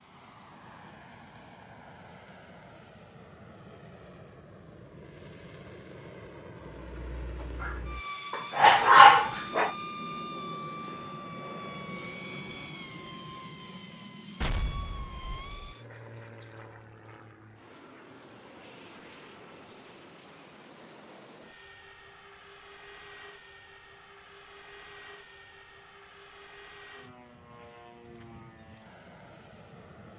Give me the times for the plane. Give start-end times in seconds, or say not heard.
0.0-30.1.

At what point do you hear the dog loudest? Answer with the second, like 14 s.
9 s.